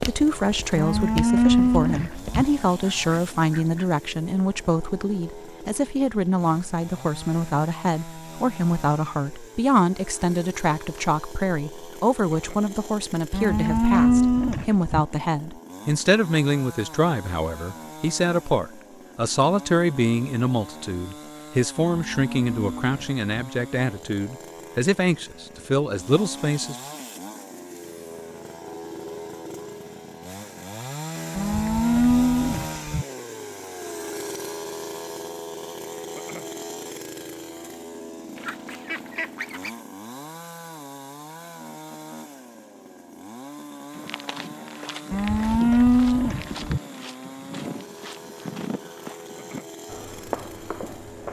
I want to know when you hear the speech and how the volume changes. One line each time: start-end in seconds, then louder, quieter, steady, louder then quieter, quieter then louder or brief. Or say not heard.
0.0-26.8 steady.